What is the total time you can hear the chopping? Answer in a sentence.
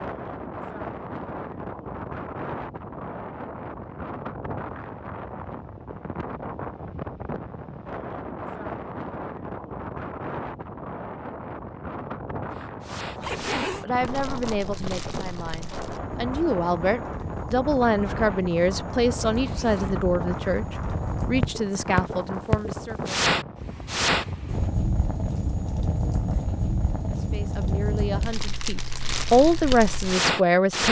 The chopping can't be heard in this clip.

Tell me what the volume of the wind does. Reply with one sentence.
The volume of the wind stays about the same.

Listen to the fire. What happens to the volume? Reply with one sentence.
The volume of the fire goes up.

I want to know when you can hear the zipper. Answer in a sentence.
The zipper can be heard from 13.2 to 13.8 s and from 19.4 to 20.1 s.